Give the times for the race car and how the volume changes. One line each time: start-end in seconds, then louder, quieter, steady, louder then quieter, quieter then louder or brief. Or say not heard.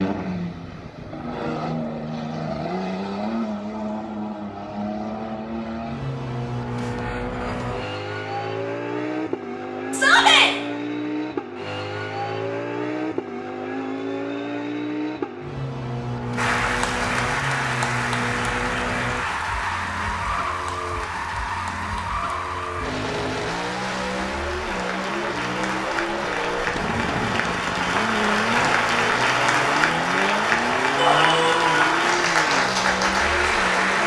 0.0-34.0 steady.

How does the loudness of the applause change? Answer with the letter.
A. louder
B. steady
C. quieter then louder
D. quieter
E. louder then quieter
C.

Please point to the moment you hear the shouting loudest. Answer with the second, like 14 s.
10 s.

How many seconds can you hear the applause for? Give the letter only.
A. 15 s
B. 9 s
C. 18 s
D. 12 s
C.